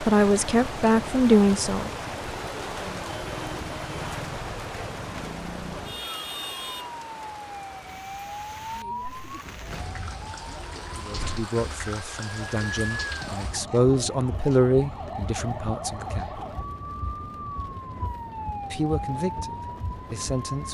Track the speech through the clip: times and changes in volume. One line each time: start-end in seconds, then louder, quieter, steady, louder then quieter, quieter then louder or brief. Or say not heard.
0.0-1.9 brief
10.9-16.4 louder then quieter
18.7-20.6 brief.